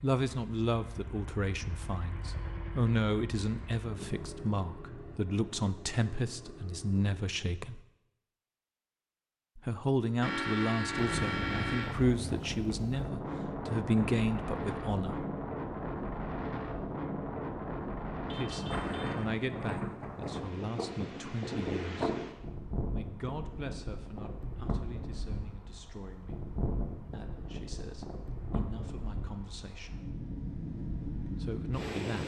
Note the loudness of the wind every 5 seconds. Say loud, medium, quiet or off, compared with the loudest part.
off, off, loud, loud, loud, medium, loud.